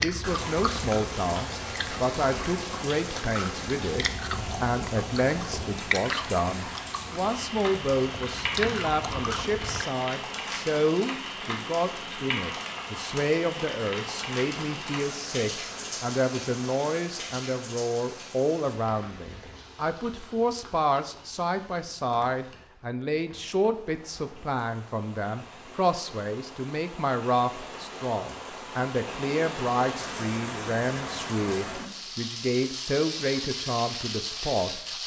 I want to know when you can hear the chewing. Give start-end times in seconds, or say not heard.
0.0-9.8.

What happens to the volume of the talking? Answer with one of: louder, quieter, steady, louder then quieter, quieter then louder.
steady.